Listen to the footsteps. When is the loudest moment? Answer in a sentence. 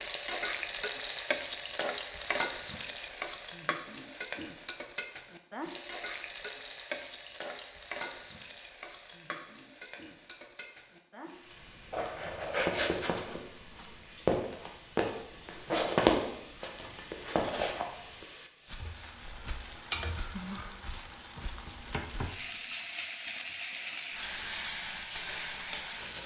The loudest moment of the footsteps is at 16 seconds.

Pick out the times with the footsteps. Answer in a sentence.
You can hear the footsteps from 11.9 to 22.6 s.